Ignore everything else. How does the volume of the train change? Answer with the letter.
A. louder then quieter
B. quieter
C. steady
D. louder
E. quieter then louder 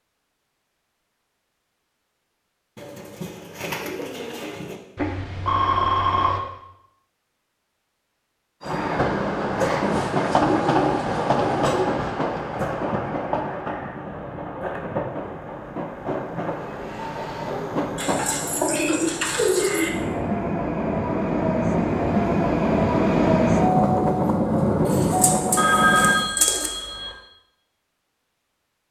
E.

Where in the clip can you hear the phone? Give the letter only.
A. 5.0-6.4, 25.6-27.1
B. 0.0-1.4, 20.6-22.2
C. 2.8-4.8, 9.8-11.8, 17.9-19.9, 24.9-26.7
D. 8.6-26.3
A.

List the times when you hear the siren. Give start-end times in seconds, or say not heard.
not heard.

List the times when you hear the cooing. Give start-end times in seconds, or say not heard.
2.8-4.8, 9.8-11.8, 17.9-19.9, 24.9-26.7.